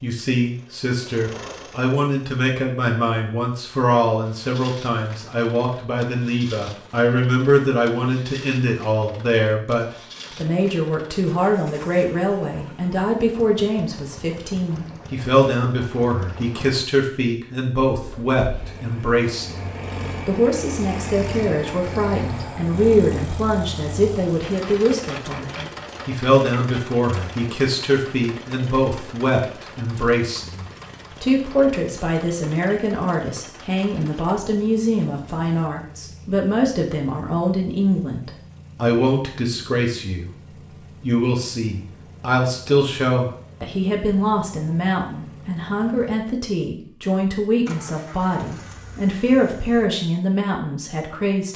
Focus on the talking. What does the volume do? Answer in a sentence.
The loudness of the talking stays about the same.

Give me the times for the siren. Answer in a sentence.
You can't hear the siren here.